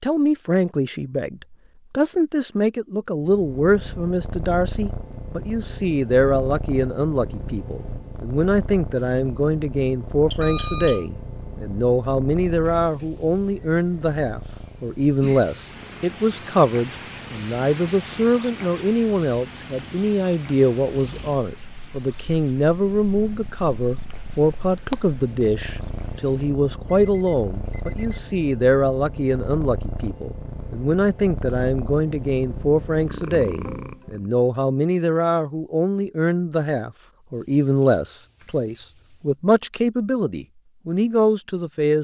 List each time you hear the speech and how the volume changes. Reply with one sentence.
The speech can be heard from 0.0 to 41.9 s, at a steady volume.